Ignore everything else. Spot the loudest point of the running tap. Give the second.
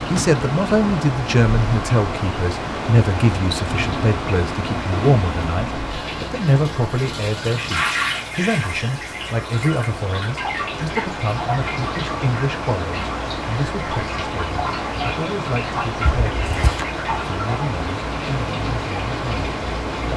8 s.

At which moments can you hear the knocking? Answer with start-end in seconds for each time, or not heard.
16.1-16.9.